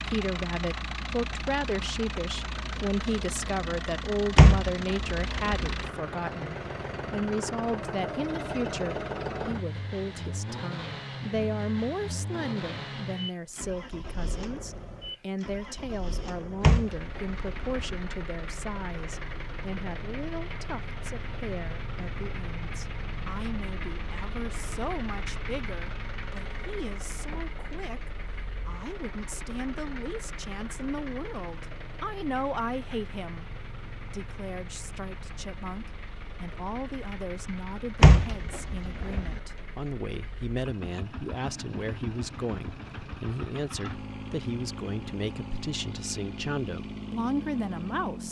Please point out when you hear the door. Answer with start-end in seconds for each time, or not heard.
4.3-5.7, 16.6-18.0, 38.0-39.4.